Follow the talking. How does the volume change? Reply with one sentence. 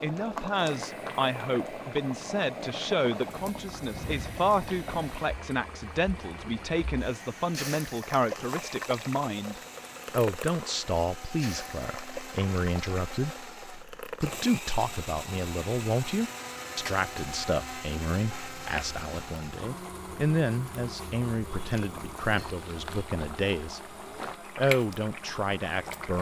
The volume of the talking stays about the same.